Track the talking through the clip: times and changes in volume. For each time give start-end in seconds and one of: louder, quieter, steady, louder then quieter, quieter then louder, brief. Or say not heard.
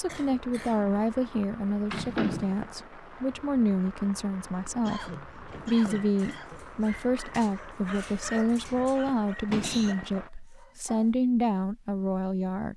0.0-12.7 steady.